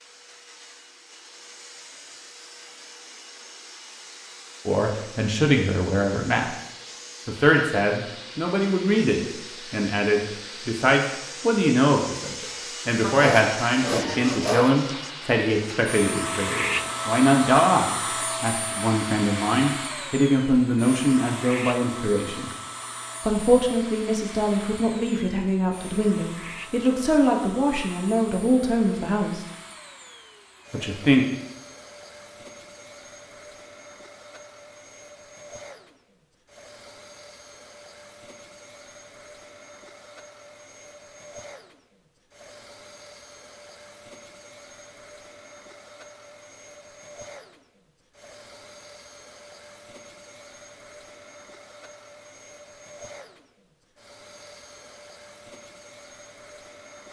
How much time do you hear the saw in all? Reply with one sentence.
You can hear the saw for 2 seconds altogether.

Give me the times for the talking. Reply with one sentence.
You can hear the talking from 4.7 to 6.5 s, from 7.2 to 22.5 s, from 23.2 to 29.4 s and from 30.7 to 31.2 s.